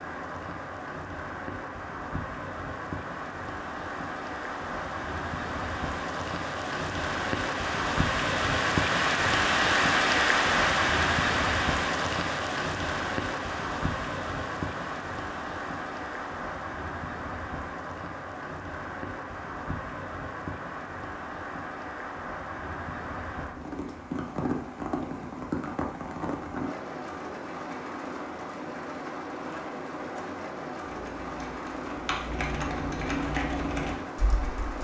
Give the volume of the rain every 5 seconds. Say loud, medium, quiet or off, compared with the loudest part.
medium, loud, loud, medium, medium, medium, medium.